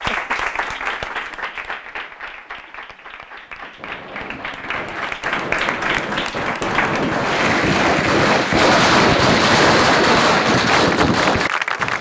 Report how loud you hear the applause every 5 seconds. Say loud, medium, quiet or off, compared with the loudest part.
medium, loud, loud.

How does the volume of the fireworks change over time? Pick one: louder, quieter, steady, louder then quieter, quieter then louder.
louder.